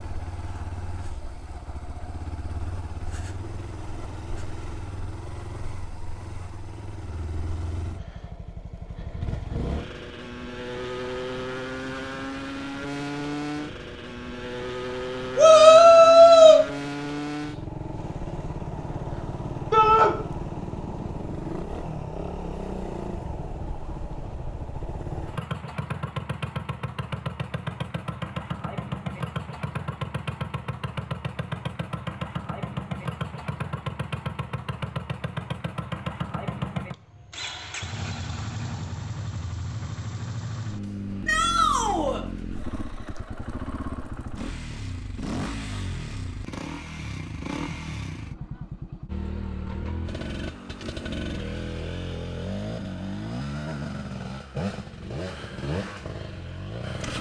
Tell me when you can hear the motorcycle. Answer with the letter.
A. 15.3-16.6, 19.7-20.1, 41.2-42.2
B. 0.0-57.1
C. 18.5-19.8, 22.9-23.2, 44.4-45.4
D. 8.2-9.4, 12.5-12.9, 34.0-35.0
B.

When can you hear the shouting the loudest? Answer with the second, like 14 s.
16 s.